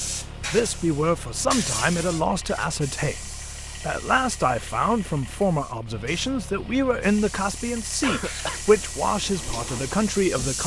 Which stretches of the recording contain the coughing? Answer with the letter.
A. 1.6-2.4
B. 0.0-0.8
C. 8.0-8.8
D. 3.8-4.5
C.